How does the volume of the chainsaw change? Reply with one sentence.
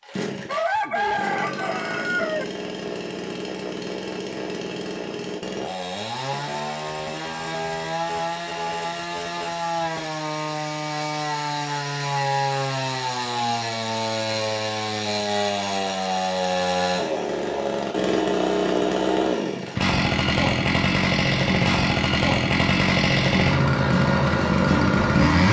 The volume of the chainsaw goes up.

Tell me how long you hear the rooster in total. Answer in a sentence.
The rooster can be heard for 2 seconds in total.